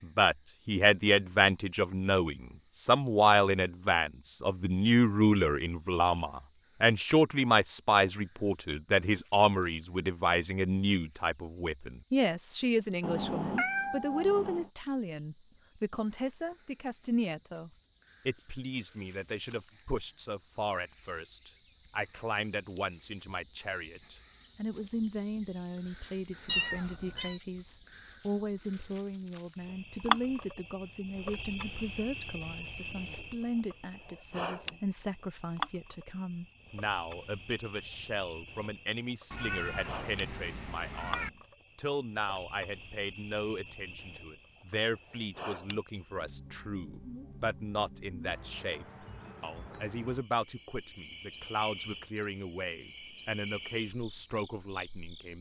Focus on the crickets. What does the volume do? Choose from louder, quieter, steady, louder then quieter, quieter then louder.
louder then quieter.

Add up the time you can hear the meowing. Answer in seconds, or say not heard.
5 s.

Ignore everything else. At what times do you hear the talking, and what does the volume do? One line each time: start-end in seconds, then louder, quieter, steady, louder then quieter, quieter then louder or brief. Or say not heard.
0.0-55.3 quieter.